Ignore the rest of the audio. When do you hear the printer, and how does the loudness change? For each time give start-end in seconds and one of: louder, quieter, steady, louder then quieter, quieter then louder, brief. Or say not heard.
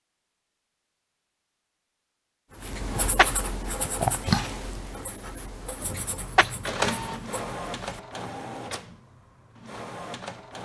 5.8-10.6 quieter.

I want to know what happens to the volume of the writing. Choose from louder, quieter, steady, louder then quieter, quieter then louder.
louder then quieter.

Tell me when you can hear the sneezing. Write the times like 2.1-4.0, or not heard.
2.8-3.4, 6.0-6.5.